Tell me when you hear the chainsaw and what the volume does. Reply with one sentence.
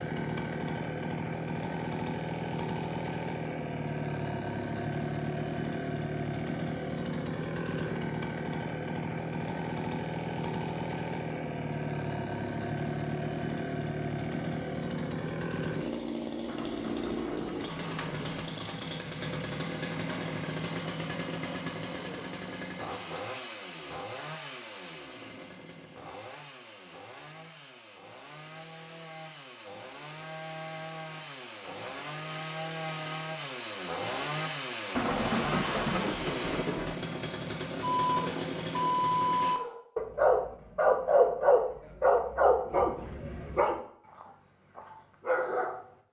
The chainsaw can be heard from 0.0 to 39.6 s, getting quieter then louder.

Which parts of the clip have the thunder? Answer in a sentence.
You can hear the thunder from 16.4 to 18.4 s and from 35.0 to 37.0 s.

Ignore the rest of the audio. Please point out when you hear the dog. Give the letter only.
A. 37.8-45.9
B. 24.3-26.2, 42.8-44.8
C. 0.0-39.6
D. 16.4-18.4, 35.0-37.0
A.